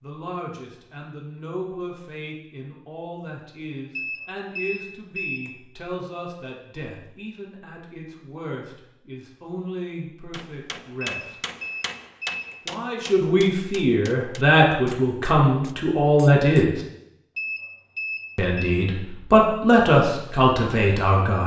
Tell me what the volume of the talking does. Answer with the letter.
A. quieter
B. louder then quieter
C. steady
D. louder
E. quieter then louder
D.